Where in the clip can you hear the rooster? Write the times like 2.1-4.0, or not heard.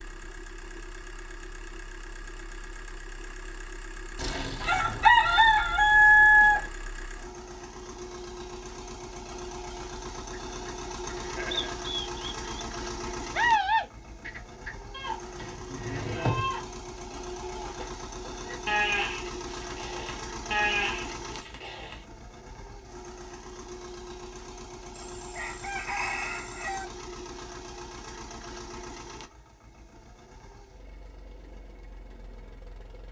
4.2-6.7, 25.1-26.9.